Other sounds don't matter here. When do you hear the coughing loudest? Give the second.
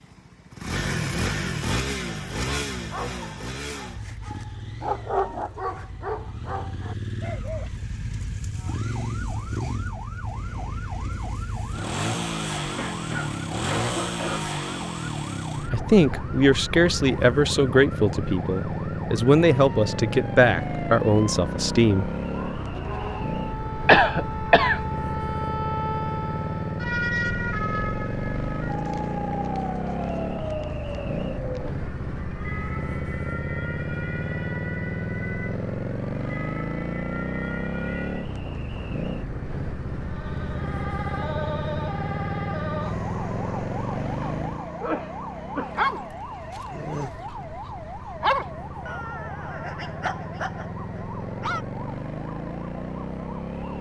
24 s.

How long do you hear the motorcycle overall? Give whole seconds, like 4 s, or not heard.
54 s.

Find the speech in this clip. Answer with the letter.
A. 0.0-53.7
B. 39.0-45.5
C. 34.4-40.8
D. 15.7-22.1
D.